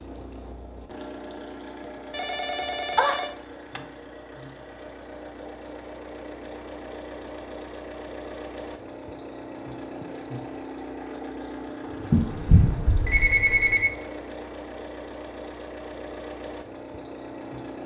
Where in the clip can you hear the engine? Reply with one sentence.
You can hear the engine from 0.0 to 17.8 s.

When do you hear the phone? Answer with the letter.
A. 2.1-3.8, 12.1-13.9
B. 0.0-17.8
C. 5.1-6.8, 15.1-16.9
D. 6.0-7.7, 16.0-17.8
A.